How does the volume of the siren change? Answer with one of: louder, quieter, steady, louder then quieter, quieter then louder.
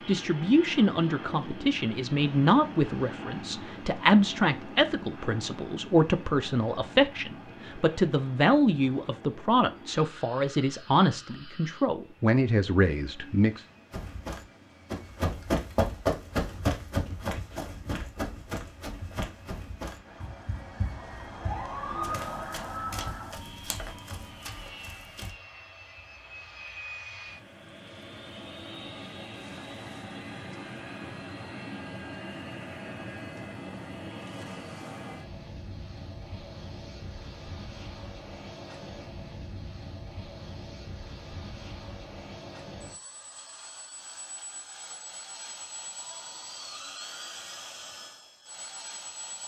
louder then quieter.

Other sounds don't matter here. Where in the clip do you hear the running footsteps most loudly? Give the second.
16 s.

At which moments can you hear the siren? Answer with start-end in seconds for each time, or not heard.
20.0-24.8.